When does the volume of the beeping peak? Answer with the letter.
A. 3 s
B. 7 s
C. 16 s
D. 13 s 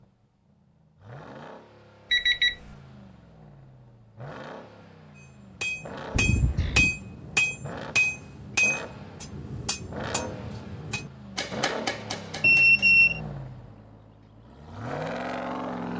D.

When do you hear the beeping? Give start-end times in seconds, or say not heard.
2.1-2.5, 6.2-6.9, 12.4-13.2.